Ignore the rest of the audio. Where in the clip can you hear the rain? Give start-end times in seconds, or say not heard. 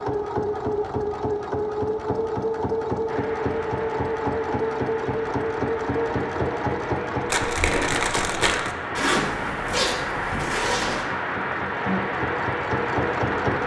3.0-13.6.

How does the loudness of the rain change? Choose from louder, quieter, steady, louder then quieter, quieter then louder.
louder.